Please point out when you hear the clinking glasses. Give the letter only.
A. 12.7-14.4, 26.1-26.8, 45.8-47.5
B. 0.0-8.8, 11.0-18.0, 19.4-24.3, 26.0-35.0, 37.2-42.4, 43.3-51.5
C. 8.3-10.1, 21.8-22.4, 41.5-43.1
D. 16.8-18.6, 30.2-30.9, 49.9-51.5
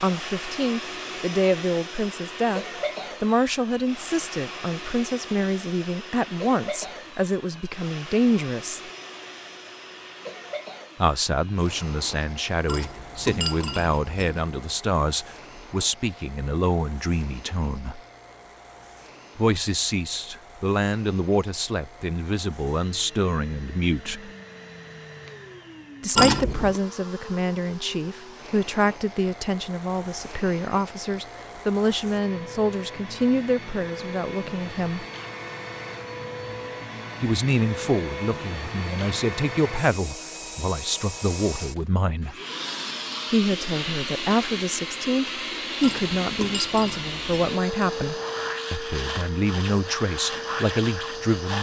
A.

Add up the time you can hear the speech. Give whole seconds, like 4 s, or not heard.
43 s.